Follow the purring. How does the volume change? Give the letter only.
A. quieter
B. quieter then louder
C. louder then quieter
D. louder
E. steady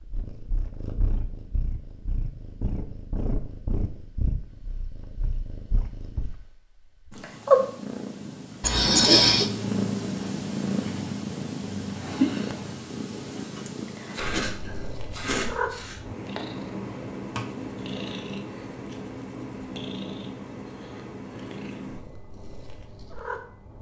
C.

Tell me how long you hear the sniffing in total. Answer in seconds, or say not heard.
3 s.